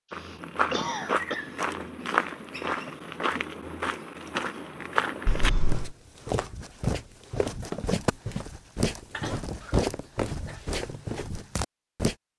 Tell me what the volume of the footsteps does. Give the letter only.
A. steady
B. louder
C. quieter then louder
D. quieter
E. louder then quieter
A.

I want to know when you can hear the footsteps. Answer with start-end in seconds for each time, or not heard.
0.1-12.2.